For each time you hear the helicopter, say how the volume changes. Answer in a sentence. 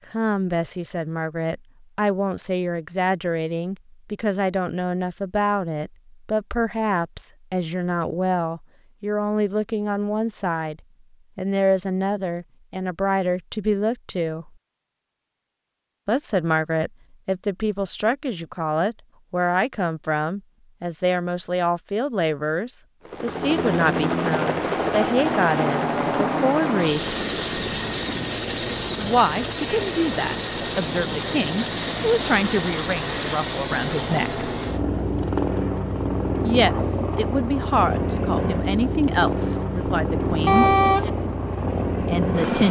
The helicopter can be heard from 23.1 to 42.6 s, at a steady volume.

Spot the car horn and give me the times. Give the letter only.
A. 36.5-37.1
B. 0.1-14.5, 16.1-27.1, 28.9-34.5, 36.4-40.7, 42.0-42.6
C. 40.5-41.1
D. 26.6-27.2
C.